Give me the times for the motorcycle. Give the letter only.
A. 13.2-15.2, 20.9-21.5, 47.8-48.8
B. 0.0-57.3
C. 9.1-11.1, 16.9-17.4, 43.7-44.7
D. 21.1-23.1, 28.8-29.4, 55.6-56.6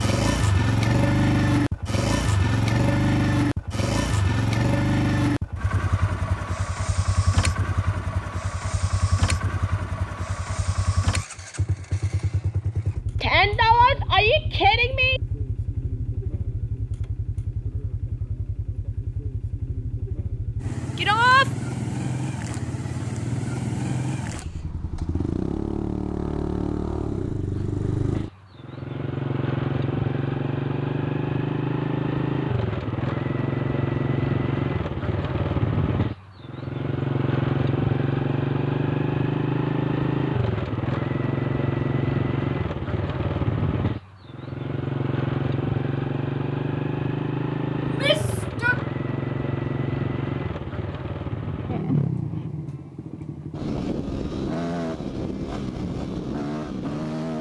B.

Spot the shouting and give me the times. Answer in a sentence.
You can hear the shouting from 13.2 to 15.2 s, from 20.9 to 21.5 s and from 47.8 to 48.8 s.